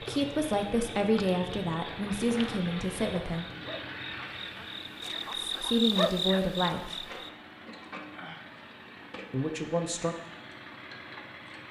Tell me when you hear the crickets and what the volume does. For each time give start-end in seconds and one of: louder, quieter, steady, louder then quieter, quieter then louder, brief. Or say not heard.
0.0-7.3 louder.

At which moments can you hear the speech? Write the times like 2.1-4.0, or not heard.
0.0-3.5, 5.3-7.1, 9.3-10.2.